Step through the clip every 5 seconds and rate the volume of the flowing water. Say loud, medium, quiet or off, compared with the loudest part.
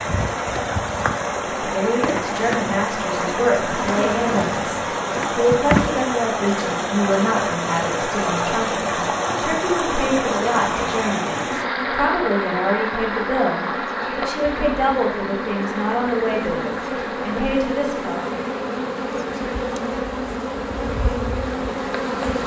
loud, loud, loud, medium, medium.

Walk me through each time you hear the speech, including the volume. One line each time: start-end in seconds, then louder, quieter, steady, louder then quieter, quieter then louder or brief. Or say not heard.
1.6-18.3 steady.